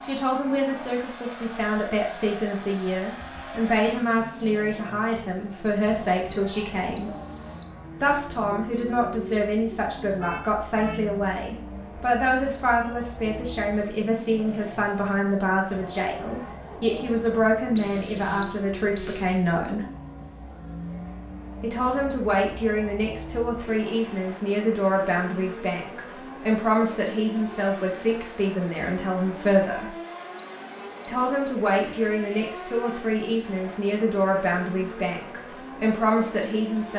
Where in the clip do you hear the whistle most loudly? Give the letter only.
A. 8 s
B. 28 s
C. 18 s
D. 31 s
C.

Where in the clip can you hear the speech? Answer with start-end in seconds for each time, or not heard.
0.0-7.1, 8.0-19.9, 21.6-29.9, 31.1-36.9.